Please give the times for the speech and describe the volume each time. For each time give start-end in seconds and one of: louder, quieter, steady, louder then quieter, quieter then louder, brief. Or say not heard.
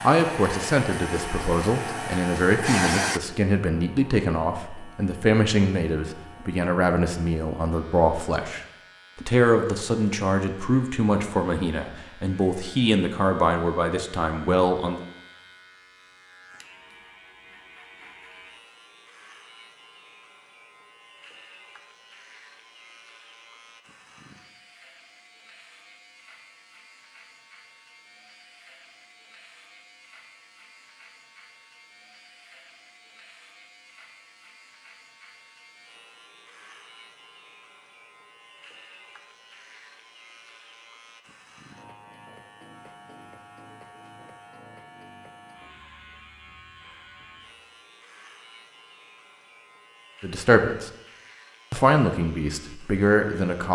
0.0-15.0 steady
50.2-50.9 brief
51.7-53.7 brief.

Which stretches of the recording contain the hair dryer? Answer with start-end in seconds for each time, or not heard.
0.0-3.2.